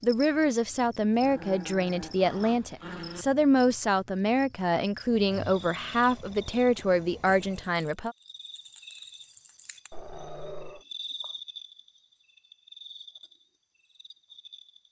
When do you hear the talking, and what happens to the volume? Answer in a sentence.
The talking can be heard from 0.0 to 8.2 s, at a steady volume.